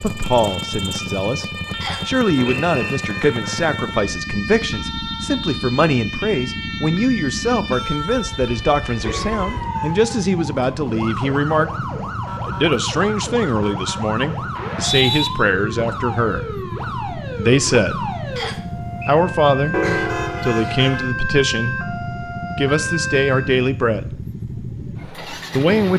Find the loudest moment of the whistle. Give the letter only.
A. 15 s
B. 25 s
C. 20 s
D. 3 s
A.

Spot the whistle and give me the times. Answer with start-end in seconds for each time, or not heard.
1.8-3.0, 14.6-15.3, 18.4-19.1.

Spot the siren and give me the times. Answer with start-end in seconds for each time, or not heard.
0.0-23.6.